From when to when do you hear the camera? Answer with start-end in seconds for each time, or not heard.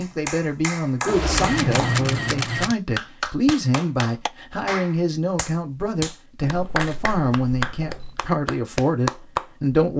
1.1-2.8, 6.4-8.2.